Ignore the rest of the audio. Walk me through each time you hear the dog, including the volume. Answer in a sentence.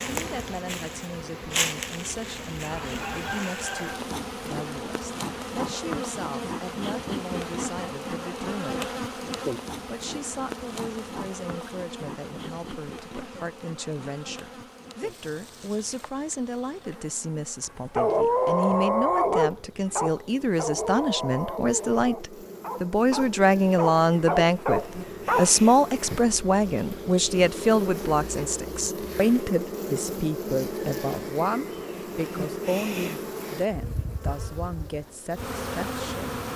You can hear the dog from 17.9 to 25.5 s, getting quieter then louder.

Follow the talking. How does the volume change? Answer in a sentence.
The loudness of the talking goes up, then down.